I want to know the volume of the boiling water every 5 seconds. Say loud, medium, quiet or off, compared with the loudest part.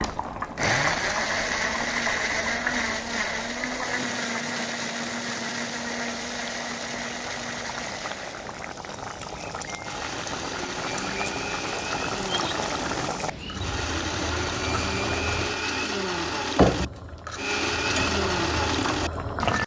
medium, medium, loud, loud.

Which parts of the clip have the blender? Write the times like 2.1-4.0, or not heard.
0.0-19.6.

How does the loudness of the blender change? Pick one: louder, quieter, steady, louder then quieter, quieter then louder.
quieter then louder.